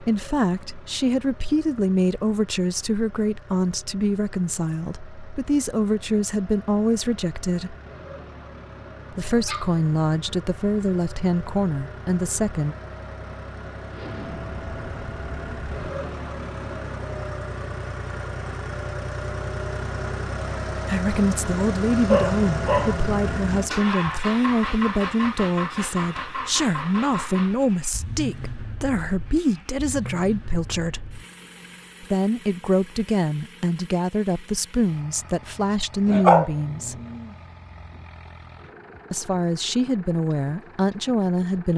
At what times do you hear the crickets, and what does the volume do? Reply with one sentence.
The crickets can't be heard in this clip.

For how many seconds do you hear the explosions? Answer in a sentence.
The explosions can be heard for 2 seconds in total.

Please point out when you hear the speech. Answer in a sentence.
The speech can be heard from 0.0 to 7.8 s, from 9.1 to 12.8 s, from 20.9 to 31.2 s, from 32.0 to 37.0 s and from 39.1 to 41.7 s.